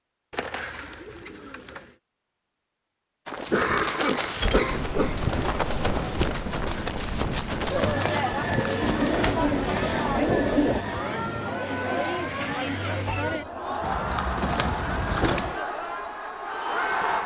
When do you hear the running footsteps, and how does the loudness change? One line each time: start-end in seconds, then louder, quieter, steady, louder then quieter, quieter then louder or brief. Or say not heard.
3.2-9.4 steady.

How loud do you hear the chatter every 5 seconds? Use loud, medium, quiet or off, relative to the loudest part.
off, loud, loud, loud.